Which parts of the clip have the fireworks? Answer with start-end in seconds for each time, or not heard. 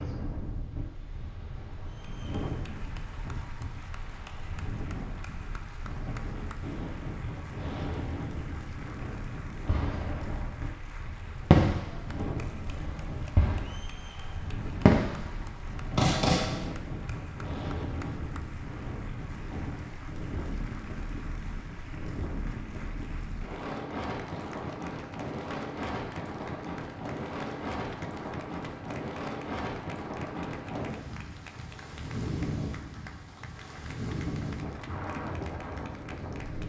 9.7-10.5, 11.5-14.0, 14.8-16.7.